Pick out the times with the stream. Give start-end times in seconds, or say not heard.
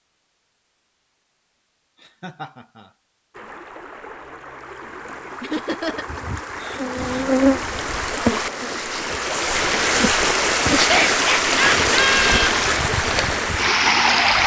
3.3-14.4.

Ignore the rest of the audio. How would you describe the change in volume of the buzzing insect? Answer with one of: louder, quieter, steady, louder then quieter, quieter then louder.
quieter.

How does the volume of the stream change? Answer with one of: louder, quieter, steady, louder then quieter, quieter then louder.
louder.